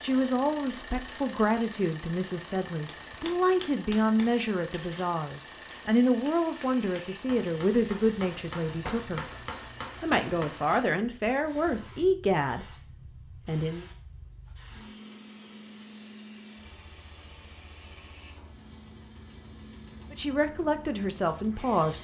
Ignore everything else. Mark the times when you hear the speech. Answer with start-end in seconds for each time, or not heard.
0.0-9.2, 10.0-12.7, 13.4-13.8, 20.1-22.0.